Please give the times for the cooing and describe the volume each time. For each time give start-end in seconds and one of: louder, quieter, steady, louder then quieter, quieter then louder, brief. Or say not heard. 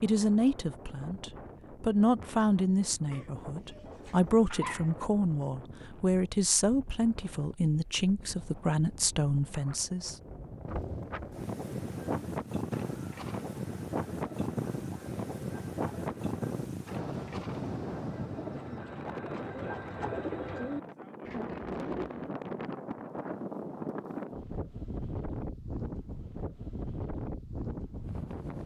11.6-22.4 louder.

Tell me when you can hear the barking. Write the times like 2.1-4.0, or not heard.
3.1-5.0.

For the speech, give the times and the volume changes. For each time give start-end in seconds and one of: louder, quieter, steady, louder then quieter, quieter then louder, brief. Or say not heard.
0.0-10.2 steady.